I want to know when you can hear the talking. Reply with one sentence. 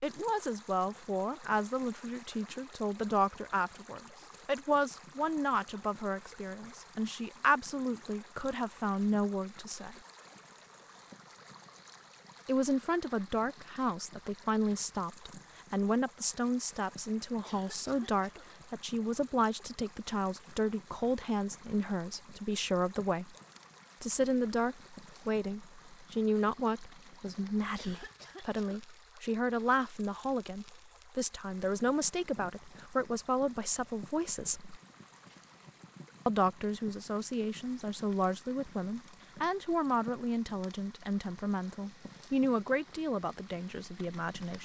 You can hear the talking from 0.0 to 9.9 s, from 12.4 to 23.4 s, from 24.0 to 34.8 s and from 36.2 to 44.5 s.